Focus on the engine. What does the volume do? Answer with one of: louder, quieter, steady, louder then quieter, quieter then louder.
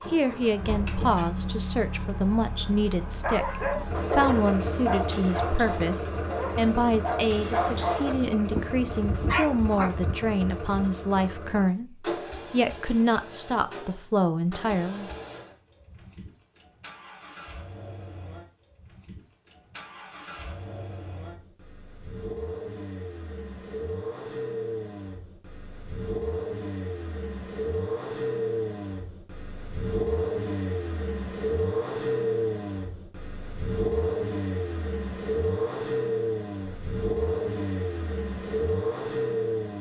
quieter then louder.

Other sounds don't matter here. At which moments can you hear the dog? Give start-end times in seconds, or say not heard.
3.2-10.9.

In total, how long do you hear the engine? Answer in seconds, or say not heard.
40 s.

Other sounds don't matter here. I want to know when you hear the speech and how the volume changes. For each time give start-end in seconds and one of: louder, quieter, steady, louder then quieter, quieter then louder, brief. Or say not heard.
0.1-15.1 steady.